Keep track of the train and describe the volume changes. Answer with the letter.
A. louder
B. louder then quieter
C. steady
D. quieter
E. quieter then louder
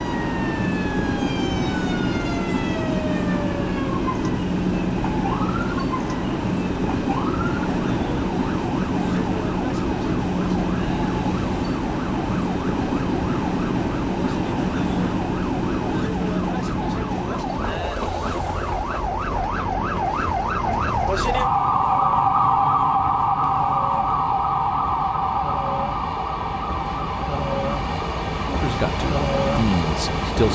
E.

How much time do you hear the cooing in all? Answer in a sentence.
The cooing can't be heard in this clip.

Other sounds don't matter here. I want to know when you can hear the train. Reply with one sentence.
You can hear the train from 0.0 to 30.5 s.